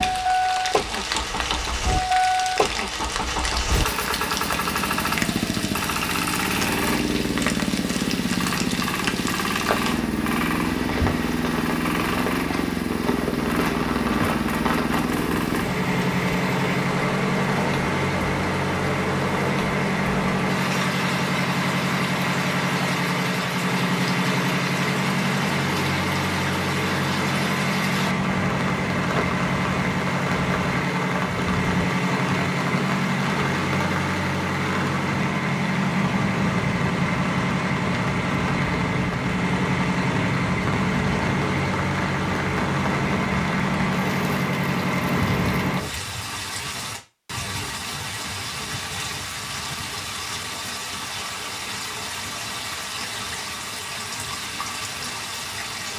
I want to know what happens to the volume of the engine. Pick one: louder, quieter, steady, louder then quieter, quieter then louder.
steady.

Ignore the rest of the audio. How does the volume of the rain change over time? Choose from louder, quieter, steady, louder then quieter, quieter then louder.
steady.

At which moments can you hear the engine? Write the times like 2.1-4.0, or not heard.
0.0-45.9.